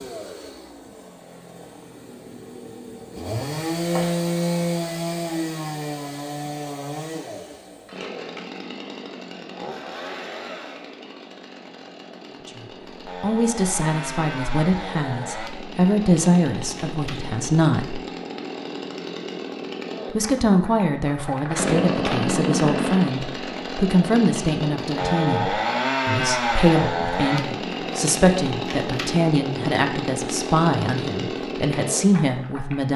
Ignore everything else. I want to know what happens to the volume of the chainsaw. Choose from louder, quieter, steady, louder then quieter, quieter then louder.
quieter then louder.